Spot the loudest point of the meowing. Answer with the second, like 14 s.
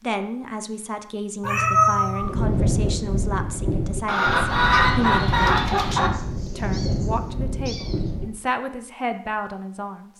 2 s.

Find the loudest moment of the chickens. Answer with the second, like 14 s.
5 s.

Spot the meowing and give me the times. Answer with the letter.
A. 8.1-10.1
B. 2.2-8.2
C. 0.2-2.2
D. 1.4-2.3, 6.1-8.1
D.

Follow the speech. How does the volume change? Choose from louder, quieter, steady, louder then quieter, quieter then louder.
steady.